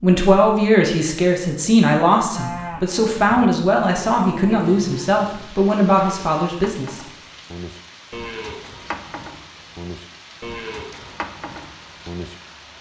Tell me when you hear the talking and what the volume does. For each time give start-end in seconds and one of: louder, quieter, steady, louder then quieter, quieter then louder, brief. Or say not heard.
0.0-7.0 steady.